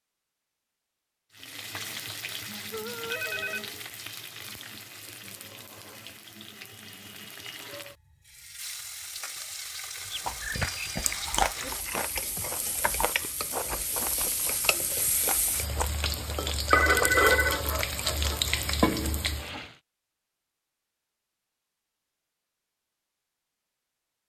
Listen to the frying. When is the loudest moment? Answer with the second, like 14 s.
17 s.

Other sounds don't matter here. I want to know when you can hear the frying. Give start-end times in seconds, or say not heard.
1.3-19.7.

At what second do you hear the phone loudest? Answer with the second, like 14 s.
17 s.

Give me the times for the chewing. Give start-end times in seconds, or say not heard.
10.2-18.6.